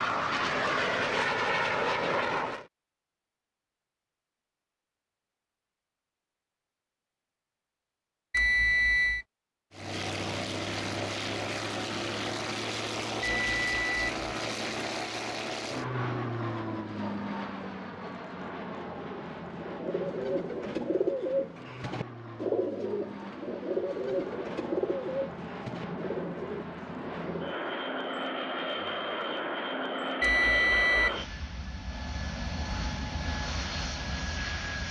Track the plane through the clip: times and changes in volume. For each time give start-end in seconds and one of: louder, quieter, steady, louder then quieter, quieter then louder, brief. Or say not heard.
0.0-2.6 brief
9.7-34.8 quieter then louder.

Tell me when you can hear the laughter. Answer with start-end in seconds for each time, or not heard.
not heard.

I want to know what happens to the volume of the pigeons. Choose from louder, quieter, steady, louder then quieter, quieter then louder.
quieter.